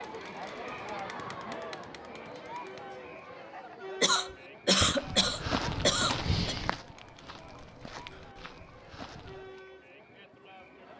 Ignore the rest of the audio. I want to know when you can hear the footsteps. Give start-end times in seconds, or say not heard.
5.0-9.6.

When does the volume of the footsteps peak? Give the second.
6 s.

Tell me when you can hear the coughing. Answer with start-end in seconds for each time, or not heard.
4.0-6.5.